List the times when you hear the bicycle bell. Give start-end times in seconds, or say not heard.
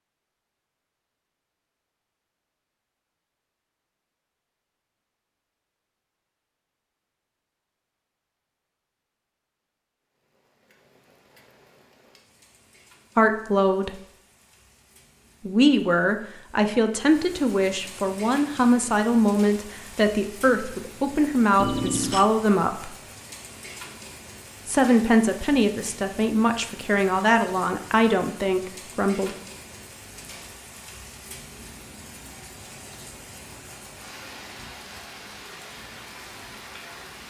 21.6-22.3.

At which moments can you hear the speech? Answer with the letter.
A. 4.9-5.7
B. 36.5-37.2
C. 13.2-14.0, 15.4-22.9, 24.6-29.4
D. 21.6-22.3
C.